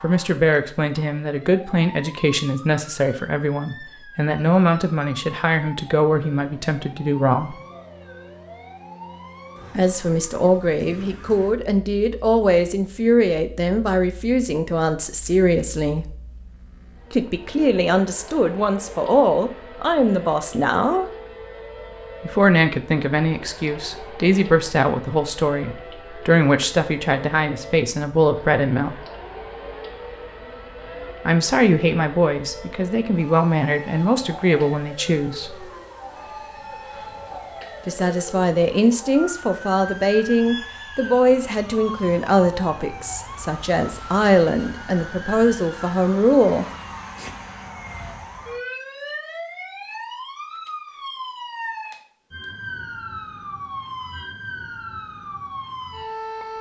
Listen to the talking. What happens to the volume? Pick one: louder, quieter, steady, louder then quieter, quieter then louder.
steady.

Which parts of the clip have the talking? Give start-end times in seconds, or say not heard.
0.0-7.5, 9.8-16.1, 17.1-21.1, 22.2-29.0, 31.2-35.6, 37.9-46.6.